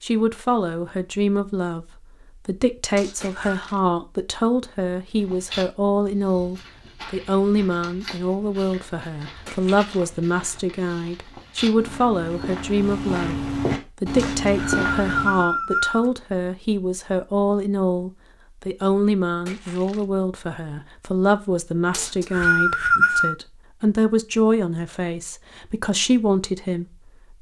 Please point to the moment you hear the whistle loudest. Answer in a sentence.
The volume of the whistle peaks at 23 seconds.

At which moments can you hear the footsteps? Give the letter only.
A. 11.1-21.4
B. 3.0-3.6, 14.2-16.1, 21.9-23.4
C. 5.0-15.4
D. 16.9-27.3
C.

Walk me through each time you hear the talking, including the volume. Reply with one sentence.
The talking can be heard from 0.0 to 27.3 s, at a steady volume.